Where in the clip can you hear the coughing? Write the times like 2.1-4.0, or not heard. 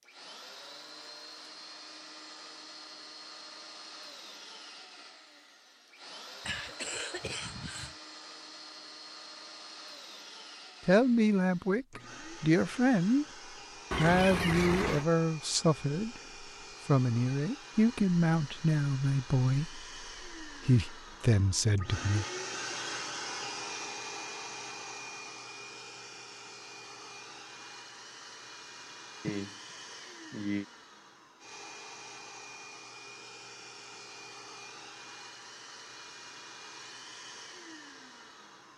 6.5-8.0, 13.9-15.1, 29.2-30.6.